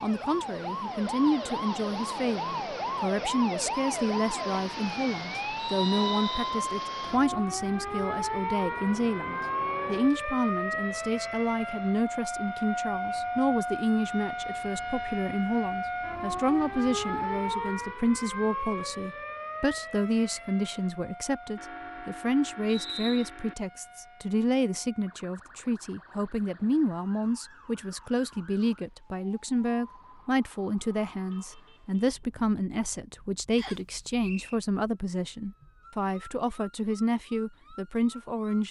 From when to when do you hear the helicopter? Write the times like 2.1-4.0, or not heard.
not heard.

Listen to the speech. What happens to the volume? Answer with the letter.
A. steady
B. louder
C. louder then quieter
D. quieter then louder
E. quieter
A.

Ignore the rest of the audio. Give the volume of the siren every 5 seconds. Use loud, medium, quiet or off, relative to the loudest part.
loud, loud, loud, loud, quiet, quiet, quiet, quiet.